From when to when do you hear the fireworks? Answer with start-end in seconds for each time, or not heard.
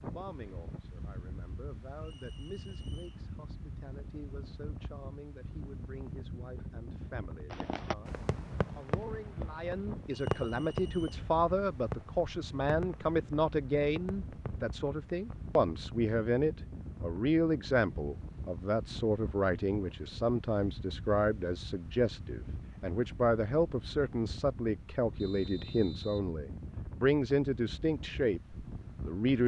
7.5-15.5.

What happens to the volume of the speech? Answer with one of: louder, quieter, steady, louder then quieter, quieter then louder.
louder.